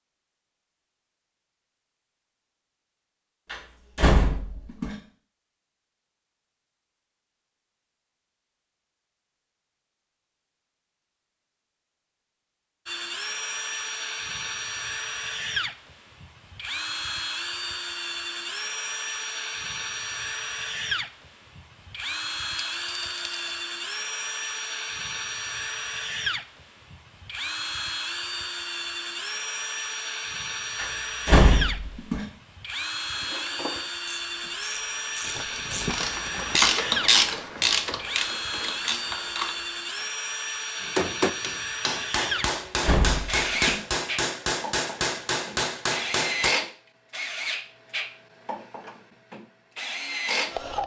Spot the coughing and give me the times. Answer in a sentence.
You can't hear the coughing here.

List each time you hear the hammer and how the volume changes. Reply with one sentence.
You can hear the hammer from 40.8 to 46.5 s, at a steady volume.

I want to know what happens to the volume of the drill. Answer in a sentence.
The loudness of the drill stays about the same.